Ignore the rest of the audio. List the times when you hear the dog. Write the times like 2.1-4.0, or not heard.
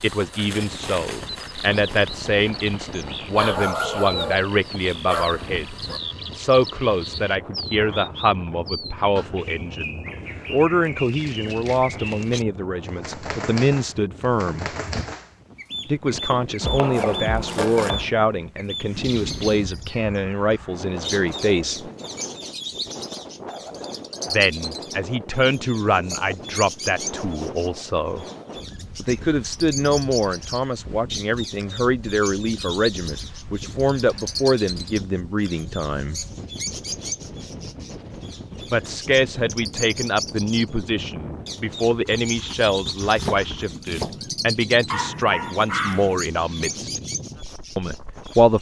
3.3-6.0, 44.9-46.1.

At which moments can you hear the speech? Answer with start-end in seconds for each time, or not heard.
0.0-14.7, 15.8-21.9, 24.3-28.2, 28.9-36.1, 38.7-47.0, 47.8-48.5.